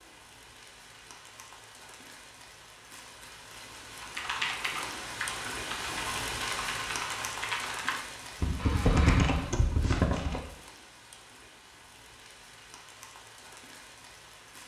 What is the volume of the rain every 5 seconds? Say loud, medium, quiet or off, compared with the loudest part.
medium, loud, quiet.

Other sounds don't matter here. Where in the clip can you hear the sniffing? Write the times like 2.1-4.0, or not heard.
8.6-9.6.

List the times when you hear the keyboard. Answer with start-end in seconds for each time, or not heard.
4.0-10.4.